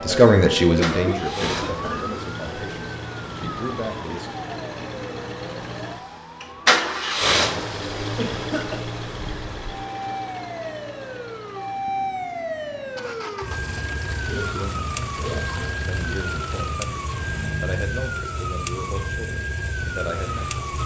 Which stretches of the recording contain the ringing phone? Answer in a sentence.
The ringing phone can't be heard in this clip.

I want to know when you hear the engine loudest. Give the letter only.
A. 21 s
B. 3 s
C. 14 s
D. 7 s
D.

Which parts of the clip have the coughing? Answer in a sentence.
You can hear the coughing from 0.1 to 2.0 s, from 8.2 to 8.8 s and from 14.2 to 15.8 s.